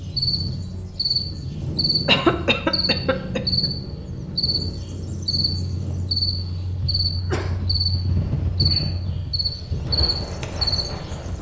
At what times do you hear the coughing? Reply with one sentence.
You can hear the coughing from 2.0 to 3.7 s and from 6.8 to 7.6 s.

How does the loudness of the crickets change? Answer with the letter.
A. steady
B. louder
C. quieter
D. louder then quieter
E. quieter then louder
A.